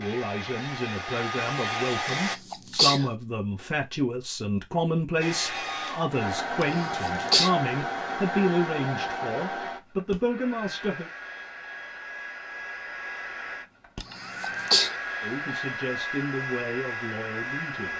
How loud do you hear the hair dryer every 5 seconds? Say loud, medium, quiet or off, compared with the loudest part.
loud, loud, medium, loud.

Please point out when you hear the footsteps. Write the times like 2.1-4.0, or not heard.
not heard.